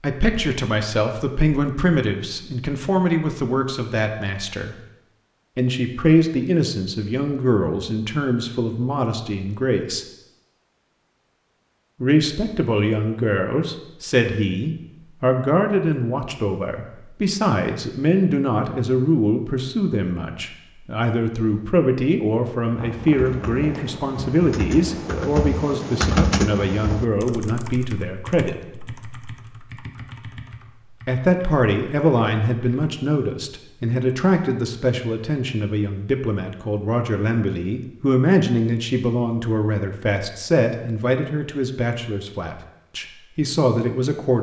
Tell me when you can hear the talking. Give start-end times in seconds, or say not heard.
0.0-4.8, 5.5-10.1, 12.0-28.6, 31.1-44.3.